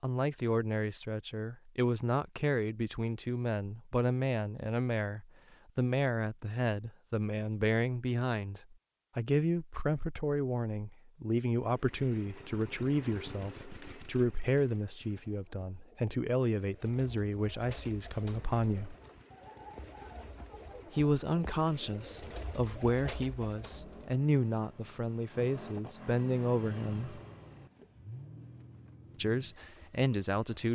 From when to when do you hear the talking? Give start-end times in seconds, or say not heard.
0.0-18.9, 20.9-27.2, 29.1-30.6.